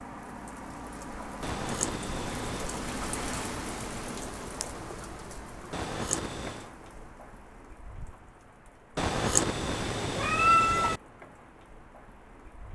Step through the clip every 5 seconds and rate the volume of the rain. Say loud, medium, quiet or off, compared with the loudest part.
loud, medium, quiet.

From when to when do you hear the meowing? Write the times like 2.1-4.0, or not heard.
1.4-2.7, 5.7-6.7, 8.9-11.0.